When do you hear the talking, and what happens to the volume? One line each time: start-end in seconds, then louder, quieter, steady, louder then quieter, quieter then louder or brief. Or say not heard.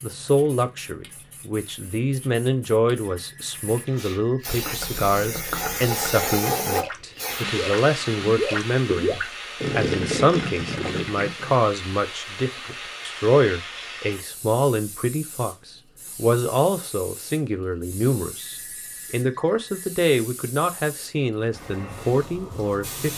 0.0-23.1 steady.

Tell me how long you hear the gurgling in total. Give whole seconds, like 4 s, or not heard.
7 s.